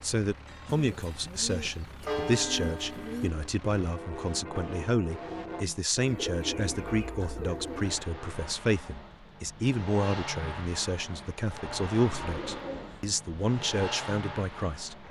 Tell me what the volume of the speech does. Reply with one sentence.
The loudness of the speech stays about the same.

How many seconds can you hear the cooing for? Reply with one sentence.
You can hear the cooing for 6 seconds altogether.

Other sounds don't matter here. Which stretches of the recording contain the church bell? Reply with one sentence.
You can hear the church bell from 0.5 to 8.4 s.